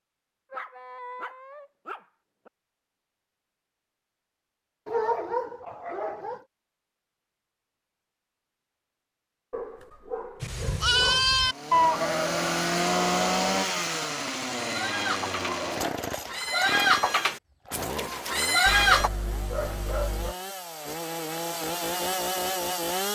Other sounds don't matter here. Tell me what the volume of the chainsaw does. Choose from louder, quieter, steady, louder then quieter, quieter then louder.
quieter then louder.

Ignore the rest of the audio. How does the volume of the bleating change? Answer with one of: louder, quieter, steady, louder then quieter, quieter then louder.
quieter then louder.